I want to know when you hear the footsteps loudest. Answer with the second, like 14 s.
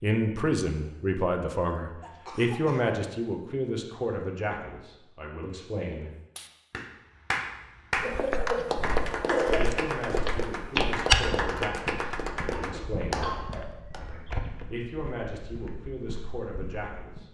11 s.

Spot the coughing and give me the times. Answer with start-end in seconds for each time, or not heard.
2.0-3.0, 8.0-9.8, 12.6-13.4.